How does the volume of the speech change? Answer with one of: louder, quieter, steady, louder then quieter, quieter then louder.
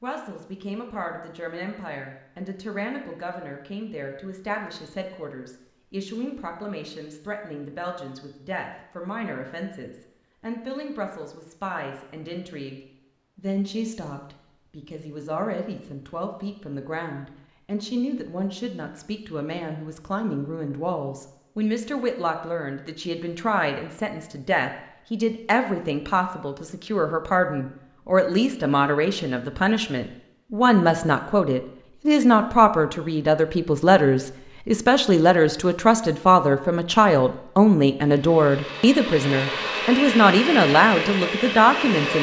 louder.